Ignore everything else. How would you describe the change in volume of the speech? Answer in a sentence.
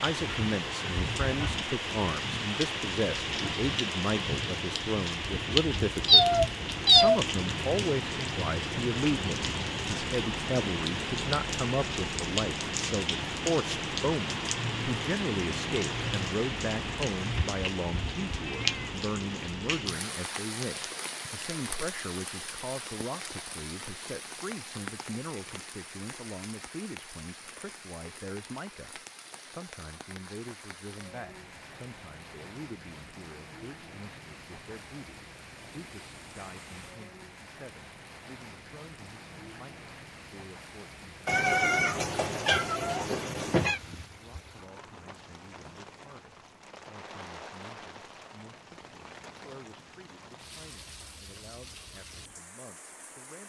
The loudness of the speech goes down.